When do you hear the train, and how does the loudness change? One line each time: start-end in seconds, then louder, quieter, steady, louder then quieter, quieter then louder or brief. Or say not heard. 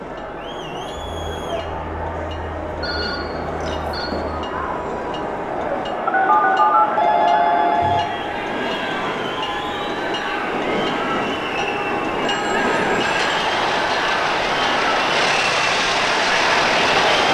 0.0-17.2 louder.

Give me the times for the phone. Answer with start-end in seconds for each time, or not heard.
2.8-4.1, 6.0-8.1, 12.2-13.4.